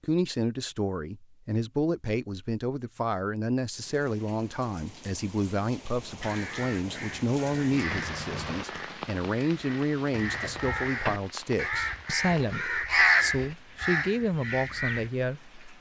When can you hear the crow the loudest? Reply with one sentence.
The volume of the crow peaks at 13 seconds.